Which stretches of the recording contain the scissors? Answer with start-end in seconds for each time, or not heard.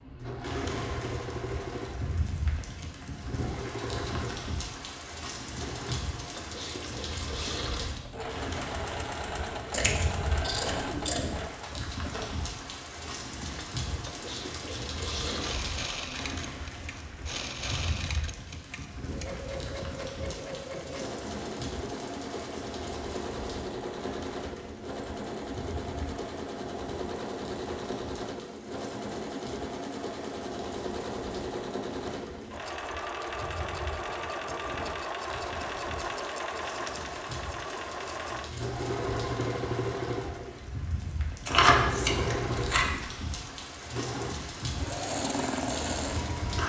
9.7-11.2, 41.5-42.9.